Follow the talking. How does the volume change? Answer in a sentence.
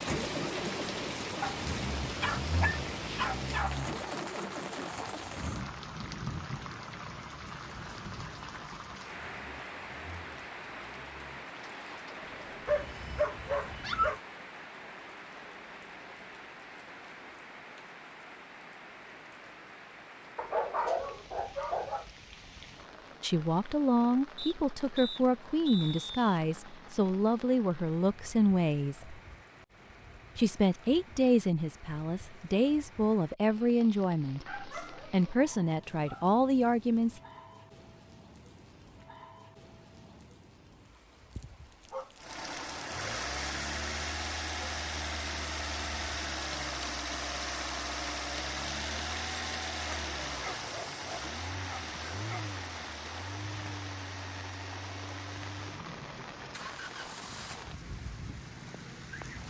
The volume of the talking stays about the same.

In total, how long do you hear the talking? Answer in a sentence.
You can hear the talking for 13 seconds altogether.